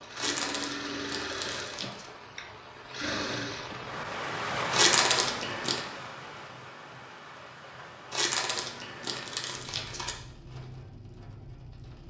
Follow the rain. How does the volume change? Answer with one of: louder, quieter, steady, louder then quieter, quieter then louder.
louder then quieter.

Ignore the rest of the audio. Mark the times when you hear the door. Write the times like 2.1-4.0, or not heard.
not heard.